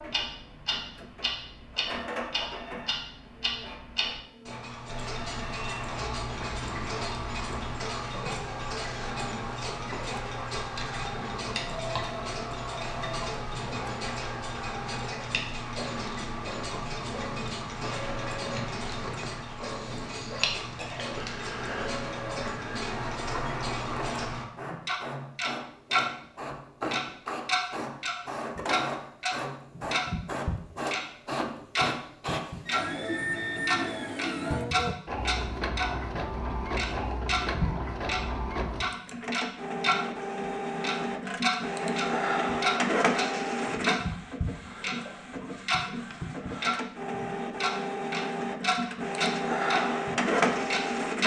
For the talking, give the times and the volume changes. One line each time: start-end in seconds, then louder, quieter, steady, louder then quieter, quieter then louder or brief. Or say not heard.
not heard.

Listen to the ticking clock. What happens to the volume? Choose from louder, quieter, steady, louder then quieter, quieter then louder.
louder.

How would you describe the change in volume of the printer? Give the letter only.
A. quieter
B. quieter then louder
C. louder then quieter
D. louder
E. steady
D.